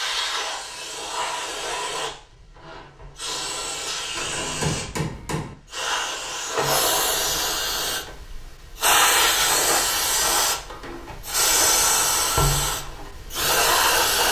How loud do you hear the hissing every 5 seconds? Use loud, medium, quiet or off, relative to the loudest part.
medium, loud, loud.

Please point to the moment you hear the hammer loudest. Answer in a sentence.
The volume of the hammer peaks at 5 seconds.